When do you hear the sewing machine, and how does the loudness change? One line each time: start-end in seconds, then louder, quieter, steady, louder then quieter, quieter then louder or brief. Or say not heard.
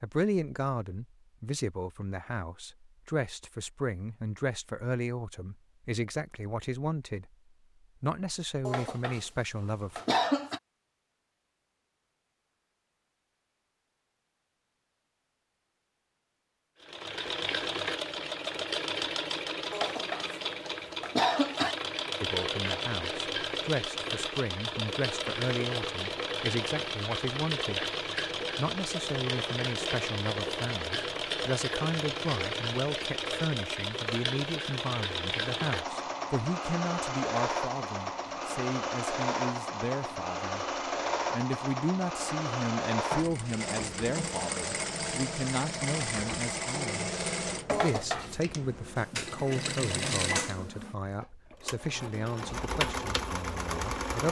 16.8-54.2 steady.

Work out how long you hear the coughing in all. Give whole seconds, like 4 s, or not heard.
4 s.